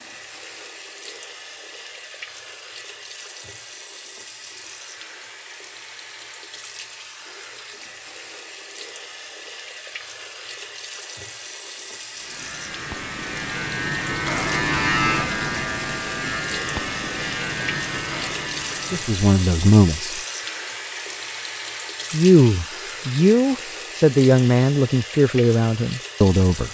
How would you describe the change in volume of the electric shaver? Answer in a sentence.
The loudness of the electric shaver goes up, then down.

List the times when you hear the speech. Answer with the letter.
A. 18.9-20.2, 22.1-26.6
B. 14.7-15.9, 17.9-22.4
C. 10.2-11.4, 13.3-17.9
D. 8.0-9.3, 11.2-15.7
A.